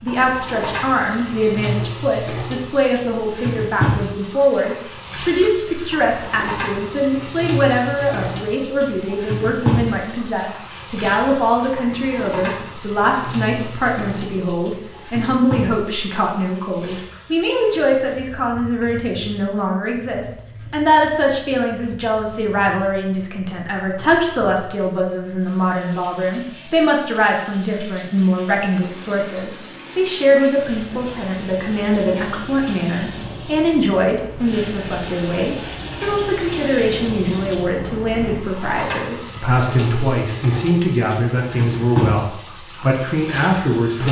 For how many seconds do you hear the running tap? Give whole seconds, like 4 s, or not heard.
44 s.